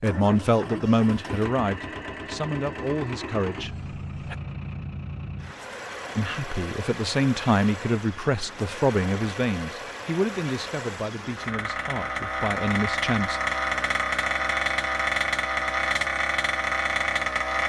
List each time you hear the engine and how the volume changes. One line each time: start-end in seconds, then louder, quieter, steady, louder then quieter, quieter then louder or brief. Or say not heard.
0.0-17.6 louder.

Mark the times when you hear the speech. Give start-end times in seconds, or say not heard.
0.0-4.3, 6.2-13.4.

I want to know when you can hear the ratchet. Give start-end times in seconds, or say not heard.
not heard.